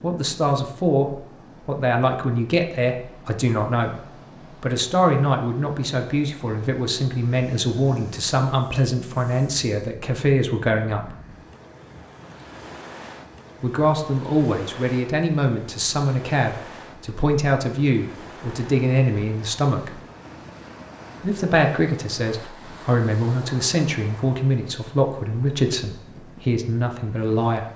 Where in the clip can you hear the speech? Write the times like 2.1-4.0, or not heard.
0.0-4.0, 4.6-11.2, 13.6-19.9, 21.2-27.6.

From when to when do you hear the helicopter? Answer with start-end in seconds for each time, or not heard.
not heard.